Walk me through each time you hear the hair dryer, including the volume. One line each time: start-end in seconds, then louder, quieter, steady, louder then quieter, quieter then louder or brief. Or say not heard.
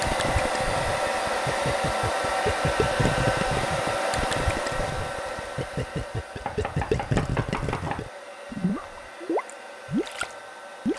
0.0-10.9 quieter.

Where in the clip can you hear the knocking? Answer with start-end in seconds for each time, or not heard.
6.5-8.0.